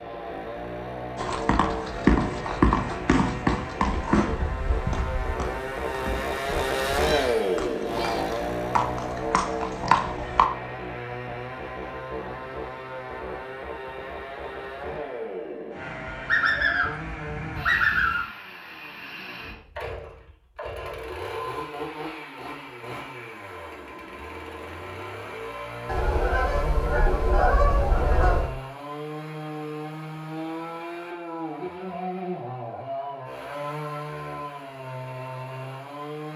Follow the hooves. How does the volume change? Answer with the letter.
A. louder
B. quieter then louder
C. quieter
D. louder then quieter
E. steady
B.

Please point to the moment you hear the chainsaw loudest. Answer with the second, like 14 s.
7 s.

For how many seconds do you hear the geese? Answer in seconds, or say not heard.
6 s.